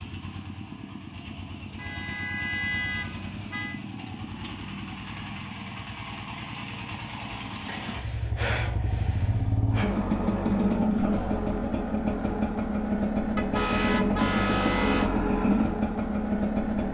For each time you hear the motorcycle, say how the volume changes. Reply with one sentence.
You can hear the motorcycle from 0.0 to 16.8 s, getting louder.